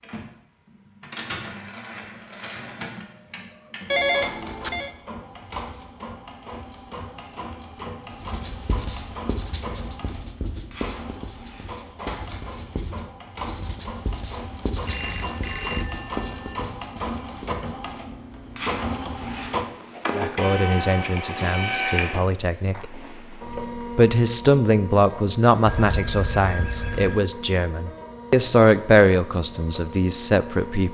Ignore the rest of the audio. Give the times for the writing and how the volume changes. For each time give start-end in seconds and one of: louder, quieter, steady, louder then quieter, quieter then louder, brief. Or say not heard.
8.2-17.9 steady.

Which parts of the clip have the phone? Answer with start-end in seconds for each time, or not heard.
3.9-4.9, 14.8-16.6, 25.6-27.2.